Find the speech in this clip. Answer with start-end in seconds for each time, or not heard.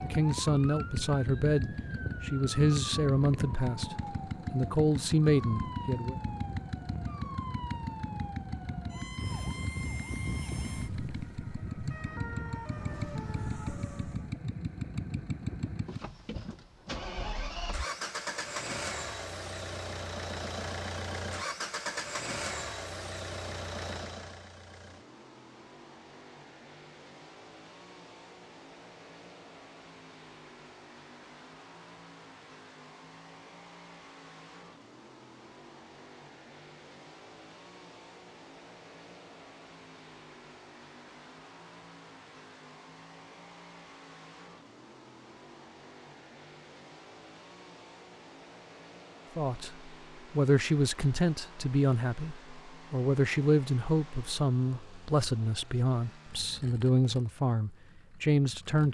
0.0-6.2, 49.4-58.9.